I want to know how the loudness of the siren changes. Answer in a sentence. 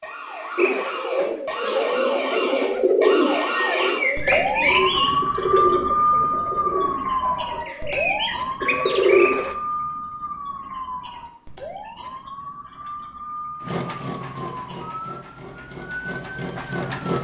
The loudness of the siren goes up, then down.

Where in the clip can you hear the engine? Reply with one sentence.
The engine can be heard from 13.6 to 17.1 s.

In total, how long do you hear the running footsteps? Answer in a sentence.
You can't hear the running footsteps here.